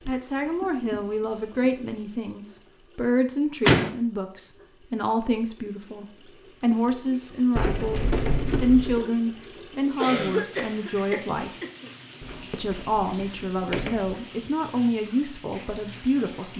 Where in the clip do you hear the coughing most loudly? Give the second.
10 s.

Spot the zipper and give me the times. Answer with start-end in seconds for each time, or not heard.
not heard.